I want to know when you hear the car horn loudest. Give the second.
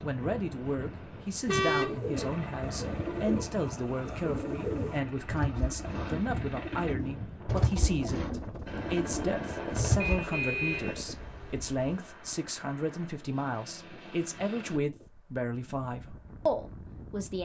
2 s.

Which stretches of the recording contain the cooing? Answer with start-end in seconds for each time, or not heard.
1.6-10.3.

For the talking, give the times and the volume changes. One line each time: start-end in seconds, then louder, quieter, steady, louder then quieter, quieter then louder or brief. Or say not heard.
0.0-17.3 steady.